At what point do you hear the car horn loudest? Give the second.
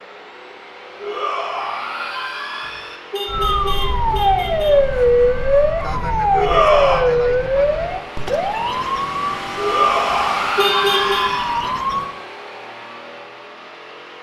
11 s.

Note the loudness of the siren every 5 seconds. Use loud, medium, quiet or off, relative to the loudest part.
loud, loud, medium.